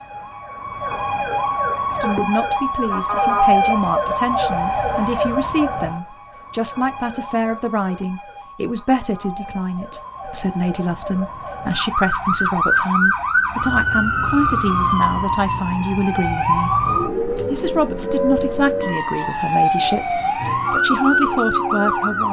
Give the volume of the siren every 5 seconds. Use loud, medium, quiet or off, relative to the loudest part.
loud, medium, loud, loud, loud.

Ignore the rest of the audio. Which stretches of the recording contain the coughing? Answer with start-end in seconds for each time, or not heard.
not heard.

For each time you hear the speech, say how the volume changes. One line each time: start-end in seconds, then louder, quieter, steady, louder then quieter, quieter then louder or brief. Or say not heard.
2.0-16.8 steady
17.5-22.2 quieter then louder.